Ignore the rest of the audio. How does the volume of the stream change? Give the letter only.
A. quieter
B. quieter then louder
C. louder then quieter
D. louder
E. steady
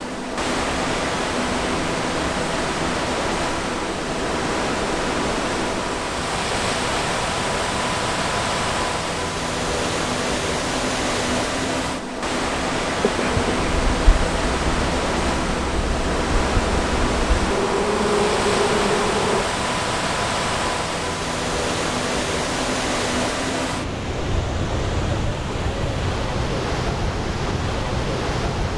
E.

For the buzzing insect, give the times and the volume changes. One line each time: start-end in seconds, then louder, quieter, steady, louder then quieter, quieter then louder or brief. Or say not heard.
12.9-19.4 louder.